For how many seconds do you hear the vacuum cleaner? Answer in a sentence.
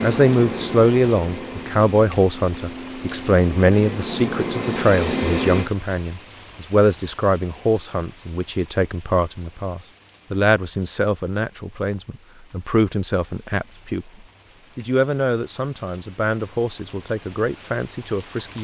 You can hear the vacuum cleaner for 6 seconds altogether.